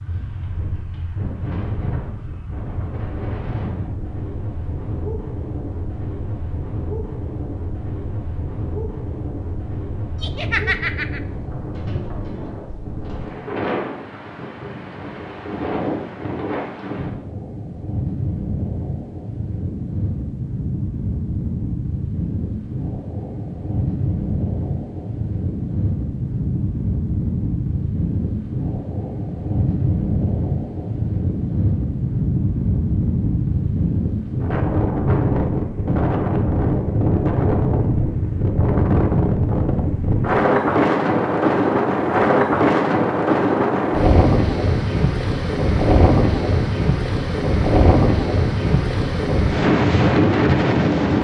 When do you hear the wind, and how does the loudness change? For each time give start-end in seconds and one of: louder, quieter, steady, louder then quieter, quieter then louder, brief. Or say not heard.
0.0-51.2 louder.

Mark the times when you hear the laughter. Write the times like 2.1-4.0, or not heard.
10.2-11.2.